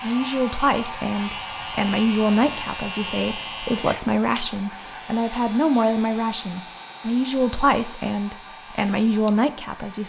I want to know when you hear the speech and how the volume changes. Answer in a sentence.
The speech can be heard from 0.0 to 10.0 s, at a steady volume.